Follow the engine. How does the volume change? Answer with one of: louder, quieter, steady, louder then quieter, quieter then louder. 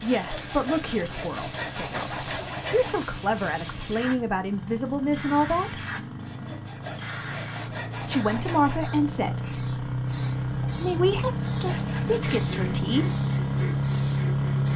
louder.